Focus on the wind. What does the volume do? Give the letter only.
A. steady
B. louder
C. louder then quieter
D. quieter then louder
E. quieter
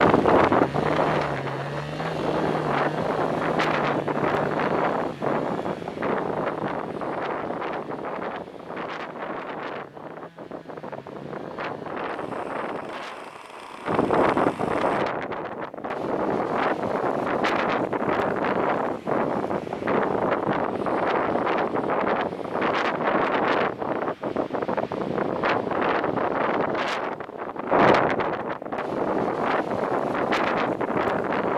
D.